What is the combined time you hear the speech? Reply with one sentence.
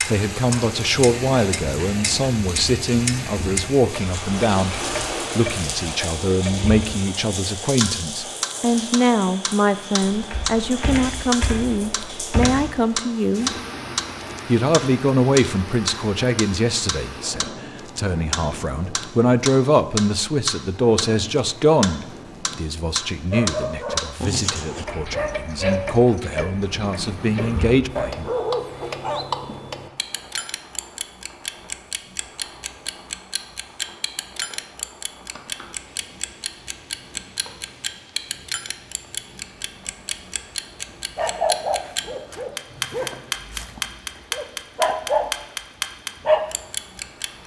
The speech can be heard for 27 seconds in total.